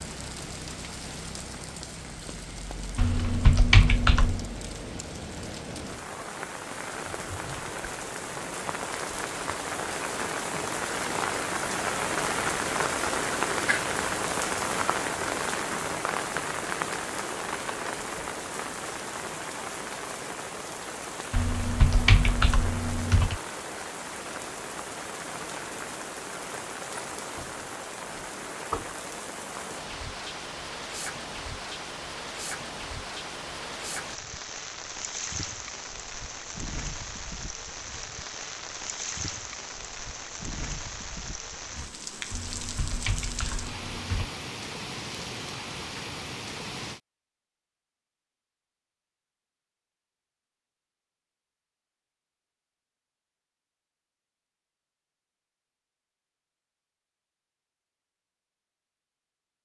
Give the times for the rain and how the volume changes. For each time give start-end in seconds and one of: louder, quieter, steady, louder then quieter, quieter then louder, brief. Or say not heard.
0.0-47.0 louder then quieter.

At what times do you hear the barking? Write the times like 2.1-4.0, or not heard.
not heard.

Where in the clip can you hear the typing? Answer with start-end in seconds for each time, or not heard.
3.0-4.5, 21.3-23.4, 42.3-44.3.